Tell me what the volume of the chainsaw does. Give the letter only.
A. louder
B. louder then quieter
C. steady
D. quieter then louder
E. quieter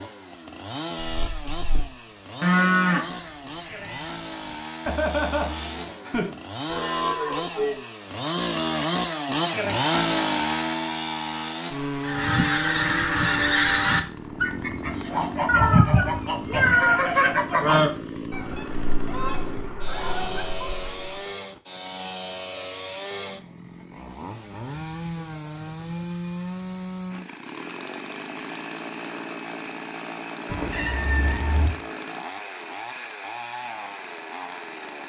B.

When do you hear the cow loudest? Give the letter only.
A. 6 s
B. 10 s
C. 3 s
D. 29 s
C.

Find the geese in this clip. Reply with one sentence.
The geese can be heard from 12.0 to 21.2 s.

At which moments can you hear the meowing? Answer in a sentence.
The meowing can be heard from 1.2 to 1.8 s, from 15.4 to 17.0 s and from 30.4 to 31.7 s.